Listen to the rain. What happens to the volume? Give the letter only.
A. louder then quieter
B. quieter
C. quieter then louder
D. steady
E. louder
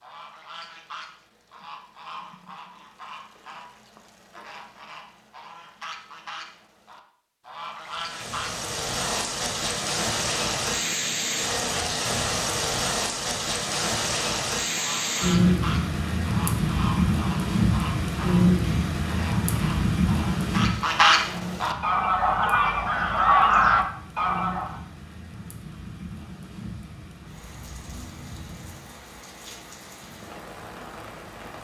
B.